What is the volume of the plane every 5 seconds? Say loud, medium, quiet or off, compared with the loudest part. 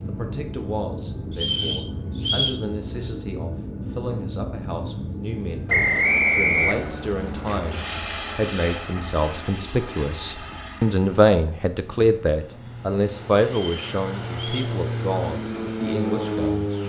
medium, medium, medium, loud.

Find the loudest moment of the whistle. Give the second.
6 s.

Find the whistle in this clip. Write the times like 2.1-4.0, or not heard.
1.3-2.6, 5.7-6.9, 13.4-14.8.